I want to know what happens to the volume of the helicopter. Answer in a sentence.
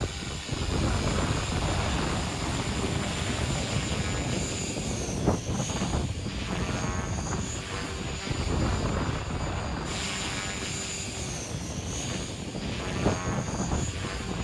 The loudness of the helicopter stays about the same.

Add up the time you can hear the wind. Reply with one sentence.
You can hear the wind for 14 seconds altogether.